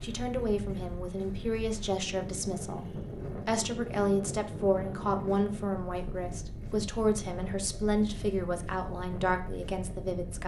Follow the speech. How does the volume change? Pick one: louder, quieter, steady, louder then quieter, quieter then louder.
steady.